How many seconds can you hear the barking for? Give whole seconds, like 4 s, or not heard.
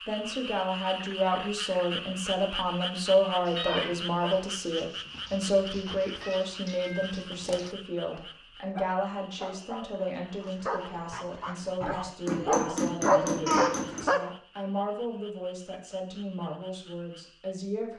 11 s.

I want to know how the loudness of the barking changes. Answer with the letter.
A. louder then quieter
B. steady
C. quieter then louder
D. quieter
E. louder
E.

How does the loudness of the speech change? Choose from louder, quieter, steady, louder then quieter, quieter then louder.
quieter.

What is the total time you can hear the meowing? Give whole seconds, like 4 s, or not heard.
3 s.